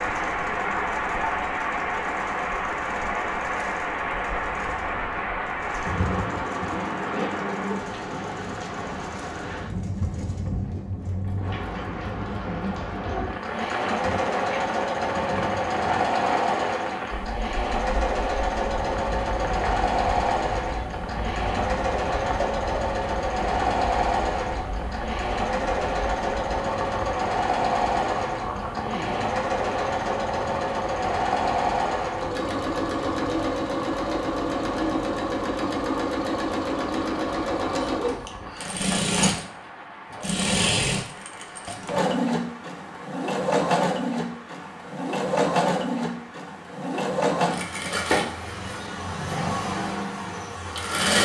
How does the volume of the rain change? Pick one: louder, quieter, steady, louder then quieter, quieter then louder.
quieter.